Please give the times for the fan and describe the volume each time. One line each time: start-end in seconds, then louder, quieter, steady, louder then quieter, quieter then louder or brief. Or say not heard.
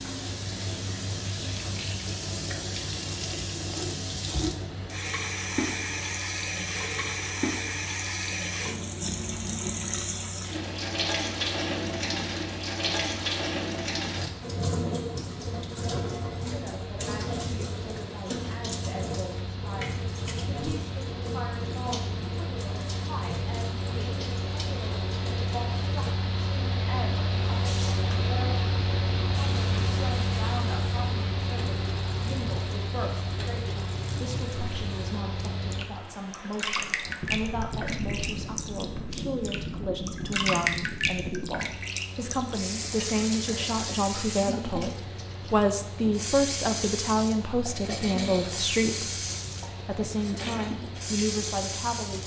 0.0-52.2 louder then quieter.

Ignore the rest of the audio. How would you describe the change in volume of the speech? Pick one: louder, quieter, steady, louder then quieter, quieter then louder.
louder.